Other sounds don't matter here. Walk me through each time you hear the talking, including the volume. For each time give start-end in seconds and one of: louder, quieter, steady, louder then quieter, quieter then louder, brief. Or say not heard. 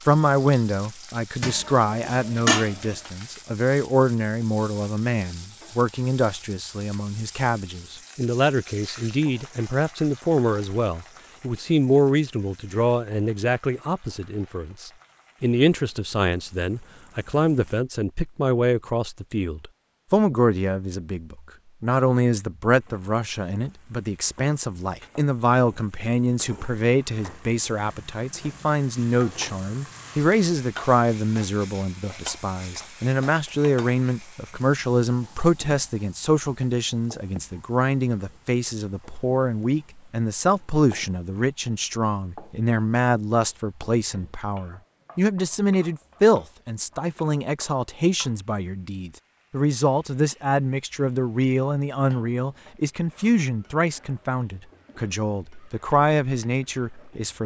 0.1-57.4 steady.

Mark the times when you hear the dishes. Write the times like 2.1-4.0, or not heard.
1.4-3.1.